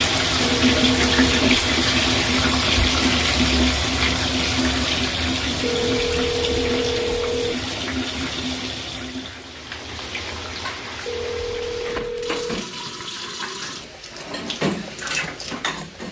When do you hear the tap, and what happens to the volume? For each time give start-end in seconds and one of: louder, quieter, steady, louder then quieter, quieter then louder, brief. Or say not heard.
0.0-16.0 quieter.